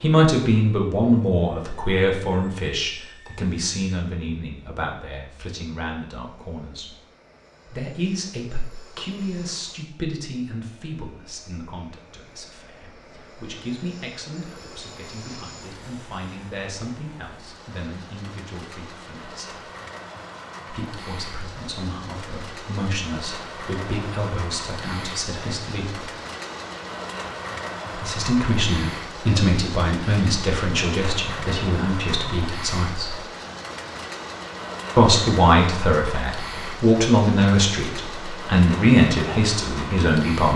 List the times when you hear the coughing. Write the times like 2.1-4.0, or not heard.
not heard.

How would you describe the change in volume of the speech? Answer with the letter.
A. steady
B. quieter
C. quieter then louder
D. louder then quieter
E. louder
C.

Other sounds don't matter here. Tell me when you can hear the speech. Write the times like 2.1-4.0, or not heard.
0.0-6.8, 7.7-19.5, 20.6-26.1, 27.9-33.1, 35.0-40.5.